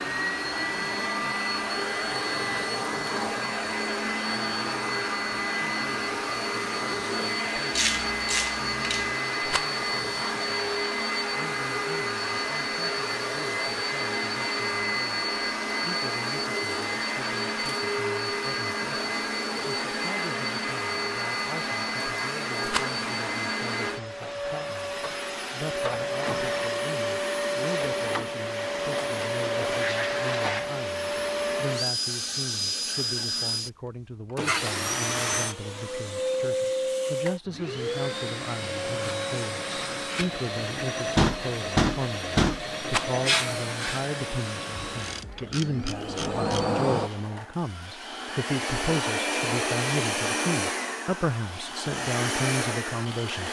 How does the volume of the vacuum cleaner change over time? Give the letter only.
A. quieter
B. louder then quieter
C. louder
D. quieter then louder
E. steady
E.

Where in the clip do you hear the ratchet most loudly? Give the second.
8 s.